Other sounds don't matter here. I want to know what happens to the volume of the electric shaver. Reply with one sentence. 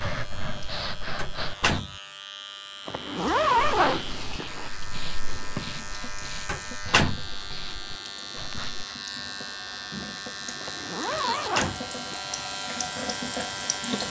The volume of the electric shaver goes up.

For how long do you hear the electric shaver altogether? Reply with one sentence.
The electric shaver can be heard for 14 seconds in total.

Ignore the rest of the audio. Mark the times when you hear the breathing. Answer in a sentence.
You can hear the breathing from 0.0 to 1.8 s and from 3.6 to 8.8 s.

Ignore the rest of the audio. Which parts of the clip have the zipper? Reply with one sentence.
The zipper can be heard from 2.9 to 4.7 s and from 10.6 to 12.4 s.